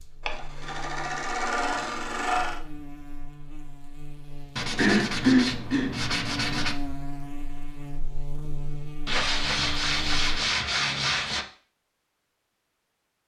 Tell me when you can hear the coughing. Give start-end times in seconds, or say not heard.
4.8-6.0.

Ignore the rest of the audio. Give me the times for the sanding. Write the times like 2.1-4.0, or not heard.
0.2-2.6, 4.5-6.8, 9.1-11.4.